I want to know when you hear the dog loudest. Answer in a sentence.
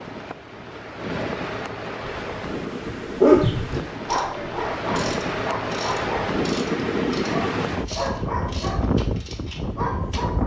The volume of the dog peaks at 3 seconds.